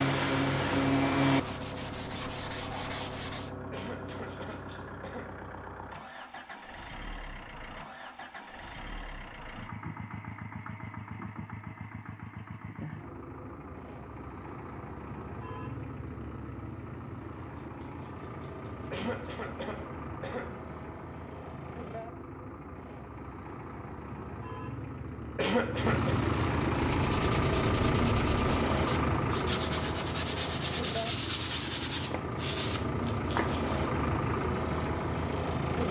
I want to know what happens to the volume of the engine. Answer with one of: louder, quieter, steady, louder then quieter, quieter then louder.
louder.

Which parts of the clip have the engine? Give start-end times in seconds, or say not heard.
0.2-35.8.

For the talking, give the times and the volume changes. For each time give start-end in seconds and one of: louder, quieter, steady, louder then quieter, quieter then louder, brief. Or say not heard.
not heard.